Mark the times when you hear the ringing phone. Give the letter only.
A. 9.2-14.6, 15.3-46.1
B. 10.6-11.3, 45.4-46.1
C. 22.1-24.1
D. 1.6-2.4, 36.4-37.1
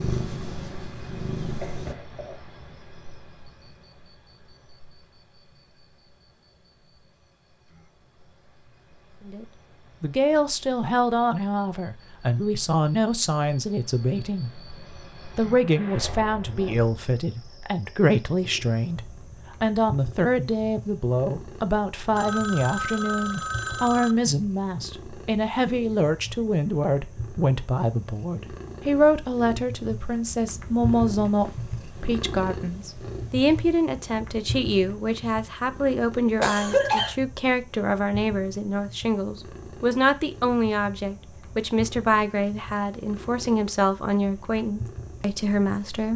C.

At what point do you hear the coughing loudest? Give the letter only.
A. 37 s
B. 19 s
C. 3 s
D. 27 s
A.